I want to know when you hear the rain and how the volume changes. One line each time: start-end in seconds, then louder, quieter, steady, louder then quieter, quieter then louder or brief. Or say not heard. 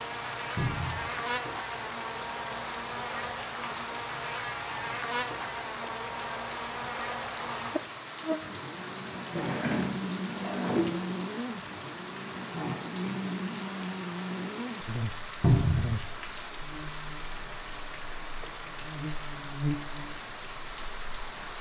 0.0-21.5 steady.